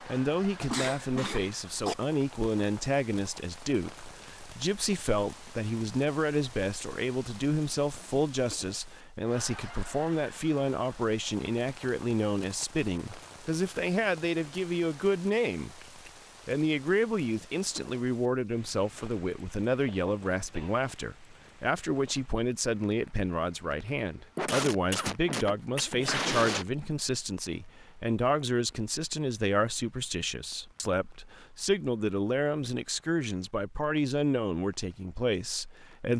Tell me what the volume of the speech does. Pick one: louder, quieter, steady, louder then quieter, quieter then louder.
steady.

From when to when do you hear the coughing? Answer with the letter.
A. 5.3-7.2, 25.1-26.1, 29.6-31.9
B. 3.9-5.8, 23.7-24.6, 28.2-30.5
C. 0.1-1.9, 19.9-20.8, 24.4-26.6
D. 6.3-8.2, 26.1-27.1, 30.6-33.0
C.